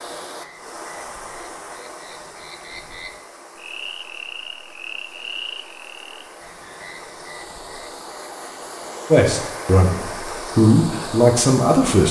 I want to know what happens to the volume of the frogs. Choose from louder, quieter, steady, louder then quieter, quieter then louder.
louder then quieter.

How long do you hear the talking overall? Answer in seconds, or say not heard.
3 s.